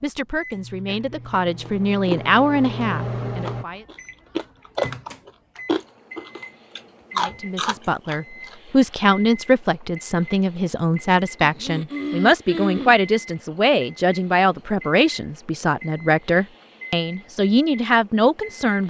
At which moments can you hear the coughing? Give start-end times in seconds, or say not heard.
0.8-1.4, 11.3-12.9.